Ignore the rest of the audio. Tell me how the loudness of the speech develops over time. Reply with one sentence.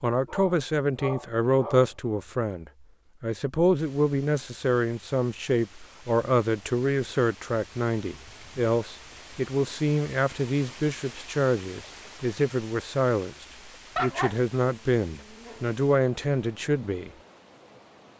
The loudness of the speech stays about the same.